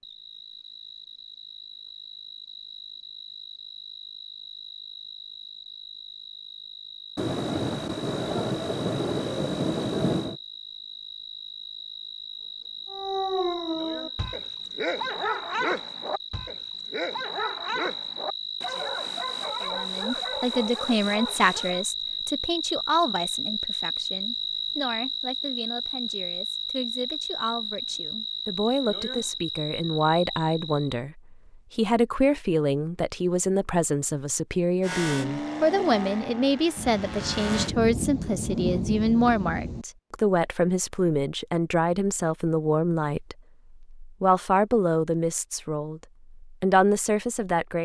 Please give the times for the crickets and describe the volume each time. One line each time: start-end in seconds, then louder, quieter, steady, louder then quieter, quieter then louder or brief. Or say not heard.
0.0-31.0 louder.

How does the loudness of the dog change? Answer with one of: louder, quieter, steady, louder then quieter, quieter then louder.
quieter.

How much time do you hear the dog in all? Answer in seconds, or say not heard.
9 s.